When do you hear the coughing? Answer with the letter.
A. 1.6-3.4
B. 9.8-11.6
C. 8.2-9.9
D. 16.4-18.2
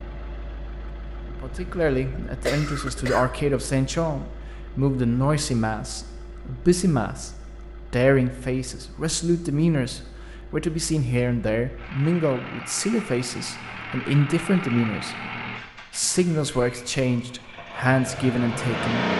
A.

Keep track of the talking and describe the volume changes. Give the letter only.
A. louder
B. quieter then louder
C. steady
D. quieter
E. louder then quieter
C.